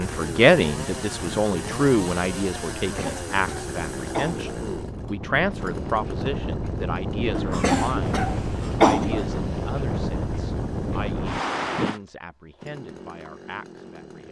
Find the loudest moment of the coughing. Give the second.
9 s.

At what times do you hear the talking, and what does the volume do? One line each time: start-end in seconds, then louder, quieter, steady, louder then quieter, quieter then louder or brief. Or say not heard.
0.0-14.2 quieter.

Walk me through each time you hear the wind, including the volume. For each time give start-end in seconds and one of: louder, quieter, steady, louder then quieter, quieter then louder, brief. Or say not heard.
0.0-12.0 louder.